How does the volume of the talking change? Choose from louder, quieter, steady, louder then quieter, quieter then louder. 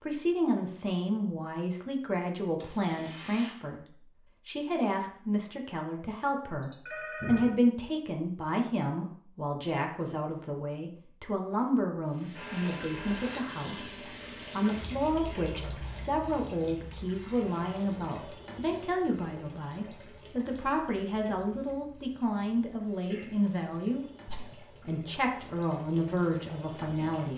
steady.